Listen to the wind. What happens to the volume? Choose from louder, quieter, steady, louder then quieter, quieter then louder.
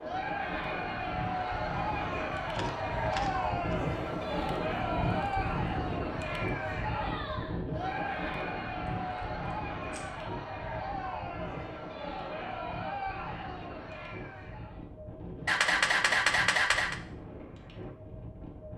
quieter.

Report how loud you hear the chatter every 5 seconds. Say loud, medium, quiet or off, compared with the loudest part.
loud, loud, medium, off.